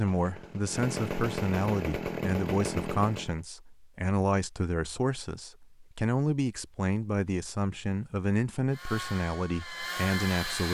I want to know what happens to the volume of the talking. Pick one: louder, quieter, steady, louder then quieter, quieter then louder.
steady.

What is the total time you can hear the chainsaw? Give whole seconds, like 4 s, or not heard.
5 s.